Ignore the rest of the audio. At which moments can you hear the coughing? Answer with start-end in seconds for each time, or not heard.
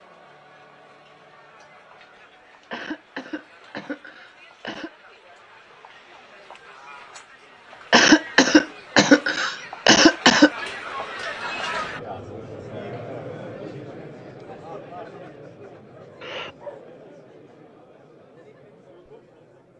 2.7-4.9, 7.9-10.5, 16.2-16.8.